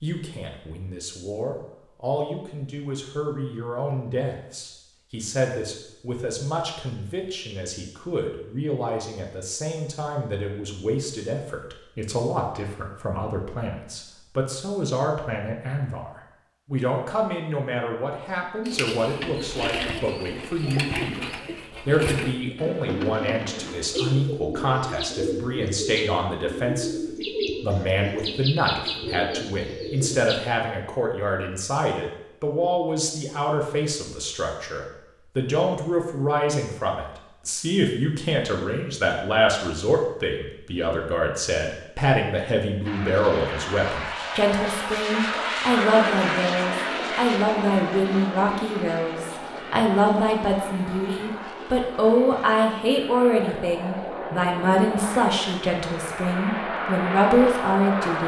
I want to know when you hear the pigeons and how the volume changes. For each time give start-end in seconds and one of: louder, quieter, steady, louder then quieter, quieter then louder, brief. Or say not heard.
18.6-30.4 steady.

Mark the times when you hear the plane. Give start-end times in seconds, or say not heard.
42.9-58.2.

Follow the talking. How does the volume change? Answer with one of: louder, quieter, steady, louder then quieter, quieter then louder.
louder.